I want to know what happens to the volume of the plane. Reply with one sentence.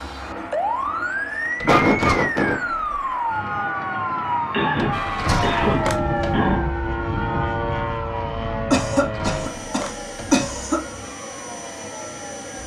The volume of the plane goes up, then down.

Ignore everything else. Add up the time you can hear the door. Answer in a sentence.
The door can be heard for 4 seconds in total.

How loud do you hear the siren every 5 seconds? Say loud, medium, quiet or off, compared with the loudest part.
loud, loud, quiet.